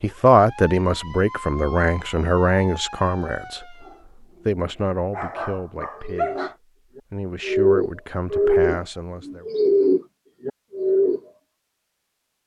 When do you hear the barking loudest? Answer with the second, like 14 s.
6 s.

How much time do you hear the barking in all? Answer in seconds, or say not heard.
3 s.